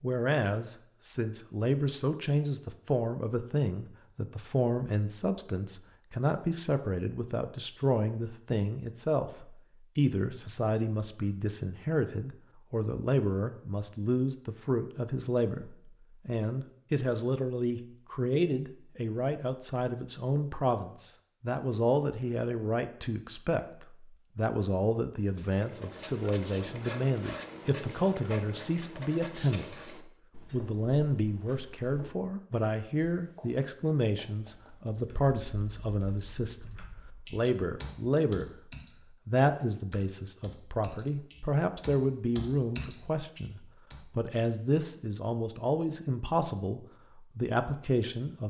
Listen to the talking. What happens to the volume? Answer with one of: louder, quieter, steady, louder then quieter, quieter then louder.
steady.